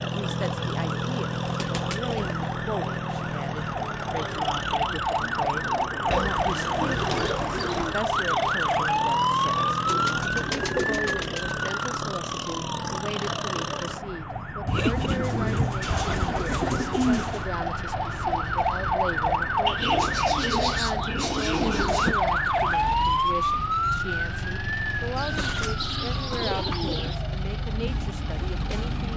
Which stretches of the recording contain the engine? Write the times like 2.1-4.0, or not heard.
0.0-29.1.